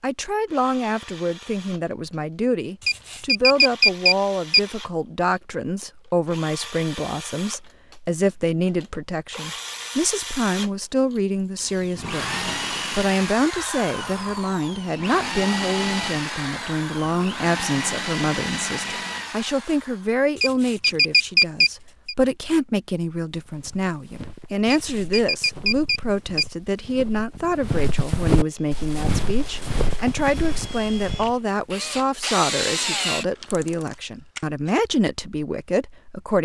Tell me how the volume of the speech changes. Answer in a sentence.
The loudness of the speech stays about the same.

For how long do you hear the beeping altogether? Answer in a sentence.
You can hear the beeping for 5 seconds altogether.